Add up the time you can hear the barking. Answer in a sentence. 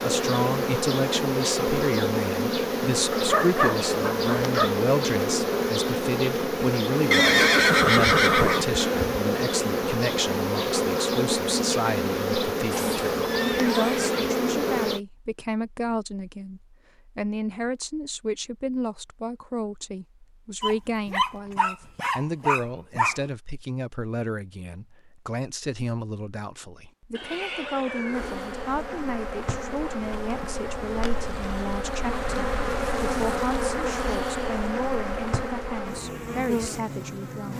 The barking can be heard for 4 seconds in total.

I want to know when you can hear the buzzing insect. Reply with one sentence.
You can hear the buzzing insect from 0.0 to 15.0 s and from 28.1 to 37.5 s.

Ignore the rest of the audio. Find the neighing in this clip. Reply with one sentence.
The neighing can be heard from 7.1 to 8.7 s, from 12.7 to 14.3 s and from 27.1 to 28.5 s.